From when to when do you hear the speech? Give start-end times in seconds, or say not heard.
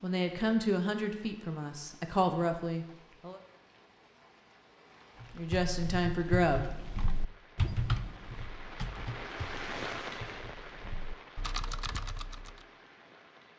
0.0-3.4, 5.3-6.7.